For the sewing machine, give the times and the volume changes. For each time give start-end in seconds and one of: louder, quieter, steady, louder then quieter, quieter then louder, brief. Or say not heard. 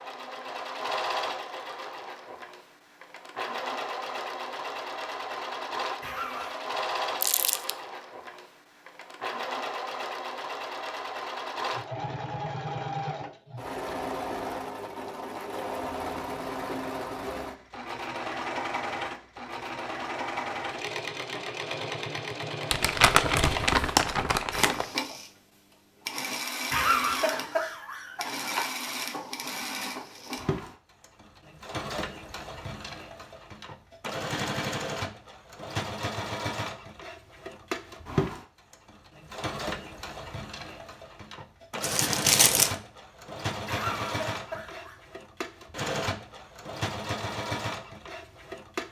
0.0-48.8 steady.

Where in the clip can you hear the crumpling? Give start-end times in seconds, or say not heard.
7.2-7.7, 22.7-24.9, 41.8-42.8.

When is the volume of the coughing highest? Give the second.
27 s.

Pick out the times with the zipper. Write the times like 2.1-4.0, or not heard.
not heard.